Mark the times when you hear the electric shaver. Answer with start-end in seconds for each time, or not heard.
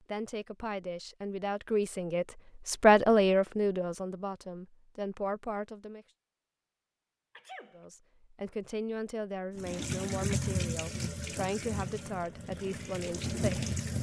not heard.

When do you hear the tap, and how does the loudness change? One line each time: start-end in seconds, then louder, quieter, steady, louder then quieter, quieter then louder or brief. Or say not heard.
9.6-13.9 quieter then louder.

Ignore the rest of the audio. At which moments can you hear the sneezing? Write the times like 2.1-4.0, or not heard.
7.3-7.8.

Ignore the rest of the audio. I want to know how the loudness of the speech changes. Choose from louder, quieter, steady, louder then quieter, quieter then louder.
louder then quieter.